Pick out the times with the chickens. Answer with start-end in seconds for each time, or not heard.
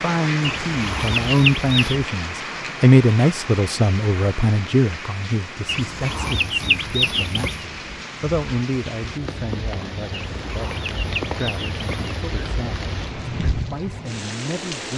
0.4-2.0, 5.7-7.7, 10.1-12.2.